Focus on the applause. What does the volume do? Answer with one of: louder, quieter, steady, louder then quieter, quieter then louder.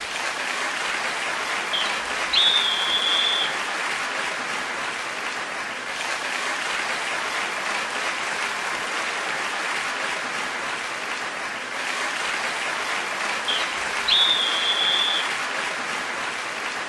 steady.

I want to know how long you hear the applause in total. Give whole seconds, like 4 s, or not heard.
17 s.